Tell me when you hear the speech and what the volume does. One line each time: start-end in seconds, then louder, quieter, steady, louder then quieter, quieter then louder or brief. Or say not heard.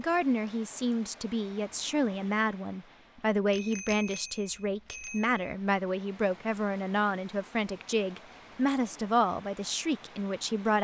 0.0-10.7 steady.